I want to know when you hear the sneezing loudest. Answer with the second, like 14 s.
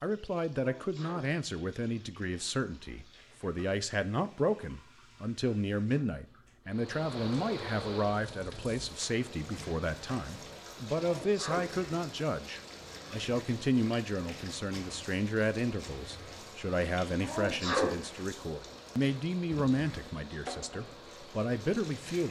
18 s.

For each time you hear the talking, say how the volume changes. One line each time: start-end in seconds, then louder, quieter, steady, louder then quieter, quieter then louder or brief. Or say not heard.
0.0-22.2 steady.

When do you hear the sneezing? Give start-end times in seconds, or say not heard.
0.6-1.3, 10.9-11.8, 17.2-18.0.